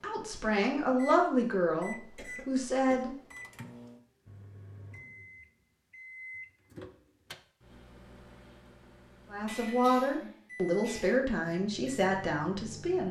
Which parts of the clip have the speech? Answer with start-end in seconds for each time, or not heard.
0.0-3.1, 9.3-13.0.